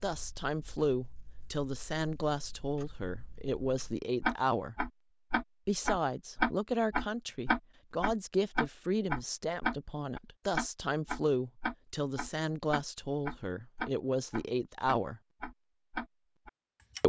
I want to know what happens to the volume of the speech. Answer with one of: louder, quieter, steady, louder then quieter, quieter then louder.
steady.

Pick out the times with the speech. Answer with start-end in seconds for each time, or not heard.
0.0-4.8, 5.7-15.2.